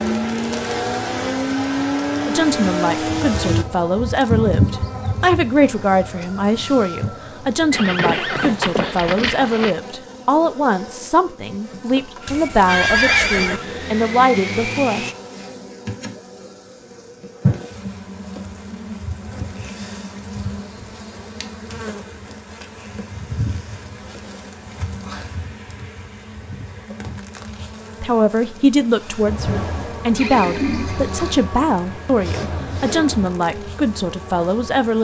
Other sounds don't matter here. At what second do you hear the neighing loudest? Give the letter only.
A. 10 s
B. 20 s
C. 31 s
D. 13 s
D.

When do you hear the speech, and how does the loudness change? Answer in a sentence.
You can hear the speech from 2.2 to 15.1 s, at a steady volume; and from 28.0 to 34.9 s, at a steady volume.